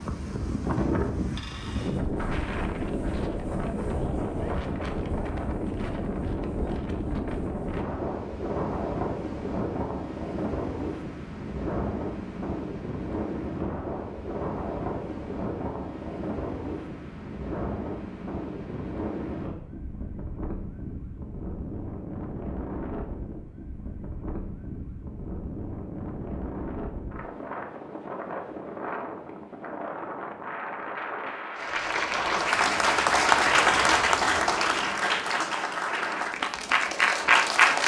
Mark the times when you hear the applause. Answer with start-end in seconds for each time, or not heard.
31.6-37.8.